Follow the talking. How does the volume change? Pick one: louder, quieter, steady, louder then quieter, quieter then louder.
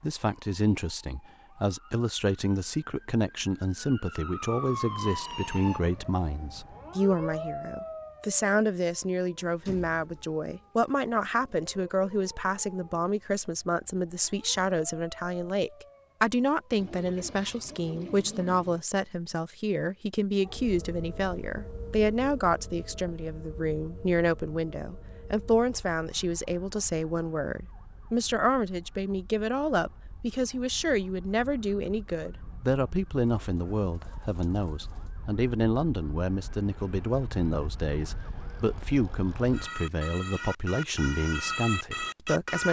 steady.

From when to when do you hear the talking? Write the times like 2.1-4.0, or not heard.
0.0-42.6.